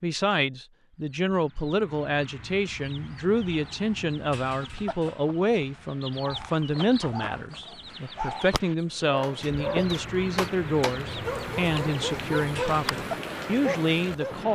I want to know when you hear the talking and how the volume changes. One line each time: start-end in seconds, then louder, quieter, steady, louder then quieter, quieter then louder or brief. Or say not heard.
0.0-14.5 steady.